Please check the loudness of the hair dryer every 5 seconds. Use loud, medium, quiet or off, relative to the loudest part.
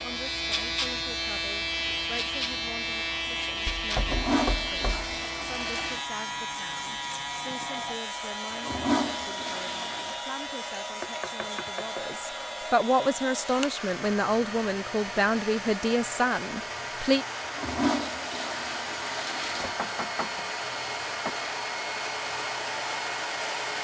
quiet, medium, medium, loud, loud.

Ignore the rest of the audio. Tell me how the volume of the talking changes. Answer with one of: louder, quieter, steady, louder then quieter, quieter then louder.
louder.